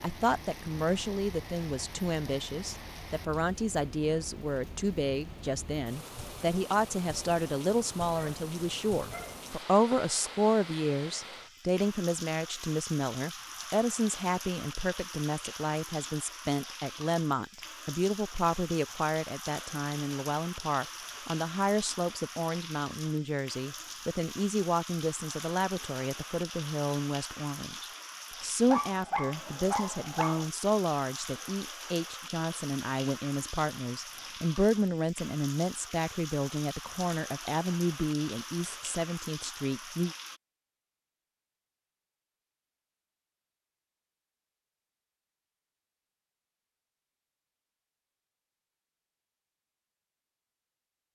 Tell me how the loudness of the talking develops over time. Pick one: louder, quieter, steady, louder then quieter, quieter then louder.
steady.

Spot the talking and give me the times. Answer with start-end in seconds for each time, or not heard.
0.0-40.1.